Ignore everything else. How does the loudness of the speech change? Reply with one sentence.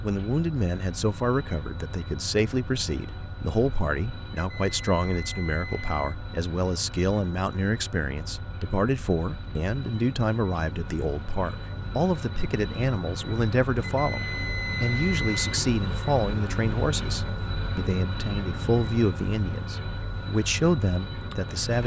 The loudness of the speech stays about the same.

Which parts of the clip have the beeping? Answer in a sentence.
The beeping can be heard from 4.3 to 6.2 s and from 13.8 to 15.4 s.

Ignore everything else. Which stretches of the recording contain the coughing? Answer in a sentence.
You can't hear the coughing here.